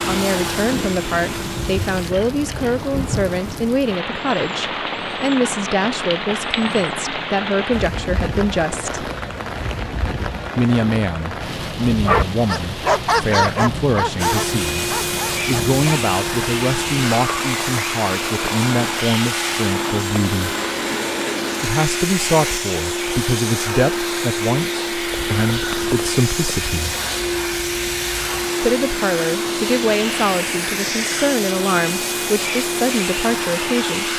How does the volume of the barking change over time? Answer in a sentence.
The loudness of the barking goes down.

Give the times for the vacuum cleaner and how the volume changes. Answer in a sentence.
You can hear the vacuum cleaner briefly from 0.0 to 2.1 s; and from 14.2 to 34.1 s, at a steady volume.